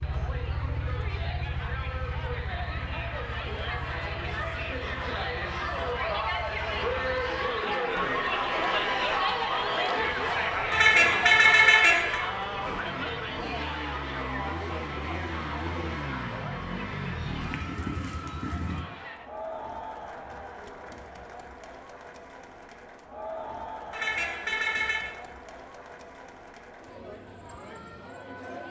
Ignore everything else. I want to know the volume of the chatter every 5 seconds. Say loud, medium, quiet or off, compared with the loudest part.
medium, loud, loud, medium, quiet, quiet.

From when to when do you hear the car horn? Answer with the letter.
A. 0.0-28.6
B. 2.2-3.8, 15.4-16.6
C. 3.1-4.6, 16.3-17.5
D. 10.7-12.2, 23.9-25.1
D.